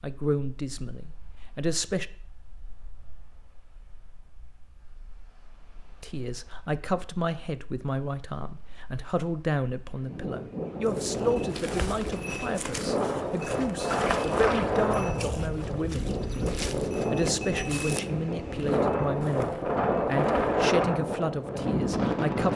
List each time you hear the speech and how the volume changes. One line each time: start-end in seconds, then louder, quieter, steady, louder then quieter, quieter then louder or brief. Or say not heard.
0.0-2.0 brief
6.0-22.5 steady.